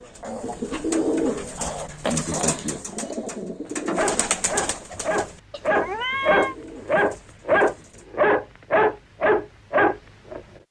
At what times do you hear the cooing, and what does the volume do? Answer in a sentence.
The cooing can be heard from 0.2 to 8.1 s, getting quieter.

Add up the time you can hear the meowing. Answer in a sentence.
The meowing can be heard for 2 seconds in total.